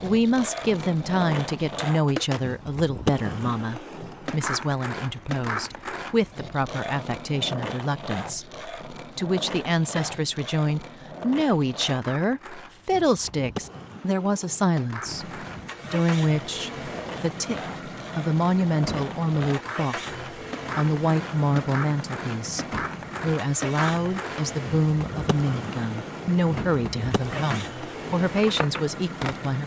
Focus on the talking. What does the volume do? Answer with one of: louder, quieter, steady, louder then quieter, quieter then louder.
steady.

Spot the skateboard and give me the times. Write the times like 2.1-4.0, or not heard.
0.0-29.5.